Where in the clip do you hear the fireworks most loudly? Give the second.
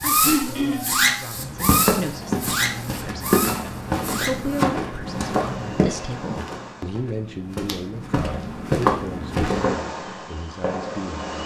1 s.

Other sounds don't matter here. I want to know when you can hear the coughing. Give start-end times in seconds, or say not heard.
0.2-1.1.